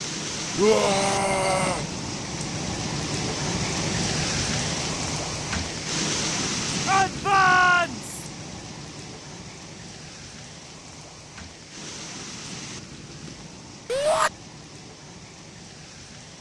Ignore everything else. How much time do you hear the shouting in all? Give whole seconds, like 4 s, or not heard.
3 s.